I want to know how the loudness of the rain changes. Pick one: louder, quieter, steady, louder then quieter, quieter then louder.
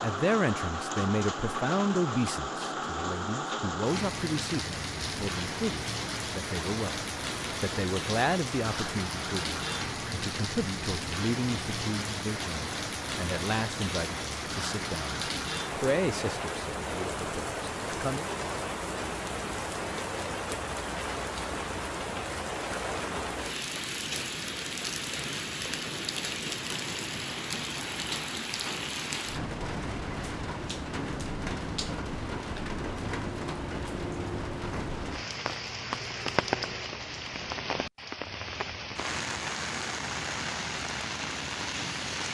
steady.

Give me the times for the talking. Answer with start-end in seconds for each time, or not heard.
0.0-18.3.